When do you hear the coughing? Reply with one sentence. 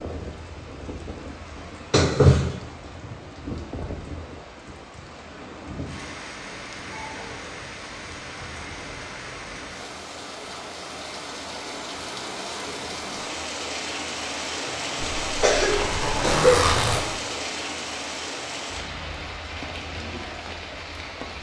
The coughing can be heard from 1.9 to 2.5 s and from 15.0 to 16.6 s.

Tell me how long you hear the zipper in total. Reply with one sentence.
The zipper can be heard for 2 seconds in total.